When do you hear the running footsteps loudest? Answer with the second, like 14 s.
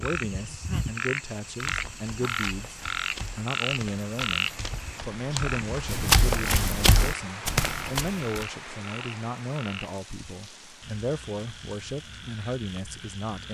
6 s.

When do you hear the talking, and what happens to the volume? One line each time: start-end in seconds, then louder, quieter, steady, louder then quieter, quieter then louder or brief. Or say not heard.
0.0-13.5 steady.